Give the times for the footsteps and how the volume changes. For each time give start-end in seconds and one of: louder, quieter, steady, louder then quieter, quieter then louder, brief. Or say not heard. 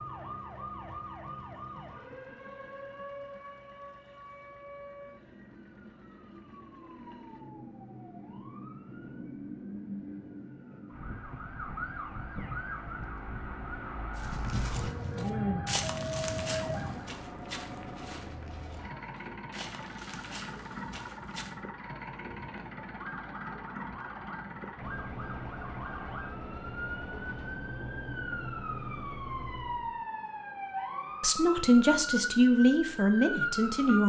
14.2-21.6 quieter.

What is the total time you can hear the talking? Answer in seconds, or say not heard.
3 s.